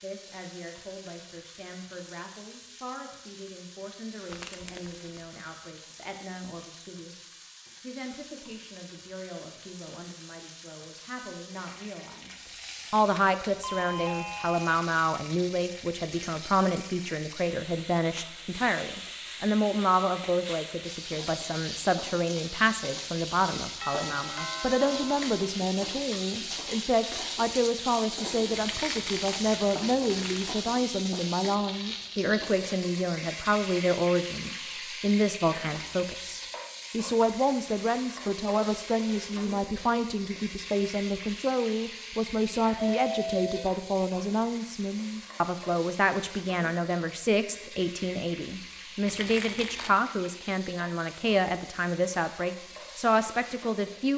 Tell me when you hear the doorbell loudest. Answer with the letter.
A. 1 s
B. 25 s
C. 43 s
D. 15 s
C.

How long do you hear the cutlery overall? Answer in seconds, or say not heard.
not heard.